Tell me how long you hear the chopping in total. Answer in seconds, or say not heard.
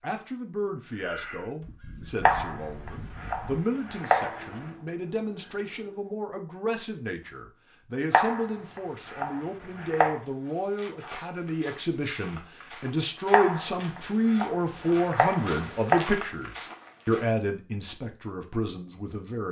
7 s.